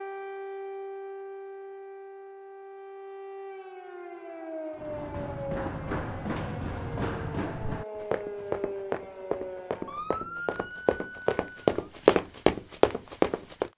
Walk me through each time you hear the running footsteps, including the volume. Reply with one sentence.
The running footsteps can be heard from 4.8 to 13.7 s, getting louder.